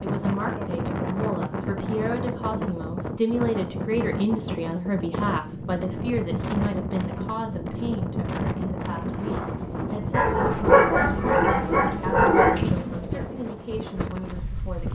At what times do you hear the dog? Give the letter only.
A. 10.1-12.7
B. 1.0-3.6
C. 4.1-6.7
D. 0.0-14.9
A.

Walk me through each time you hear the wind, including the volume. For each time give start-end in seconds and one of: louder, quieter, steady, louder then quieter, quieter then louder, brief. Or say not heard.
0.0-14.9 steady.